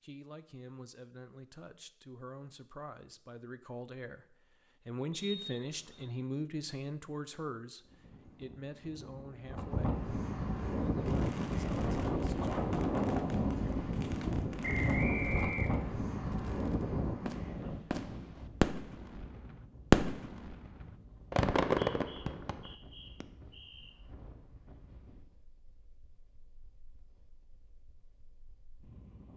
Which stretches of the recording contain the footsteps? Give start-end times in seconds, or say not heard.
not heard.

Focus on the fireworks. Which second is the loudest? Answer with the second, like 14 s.
20 s.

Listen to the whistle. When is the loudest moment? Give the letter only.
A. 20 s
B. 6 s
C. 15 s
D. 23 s
C.